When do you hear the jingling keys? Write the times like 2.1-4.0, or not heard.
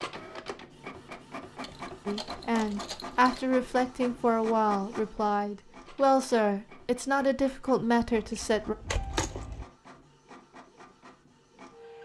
1.6-3.5, 8.2-9.7.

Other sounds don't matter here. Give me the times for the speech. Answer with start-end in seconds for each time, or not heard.
2.0-8.8.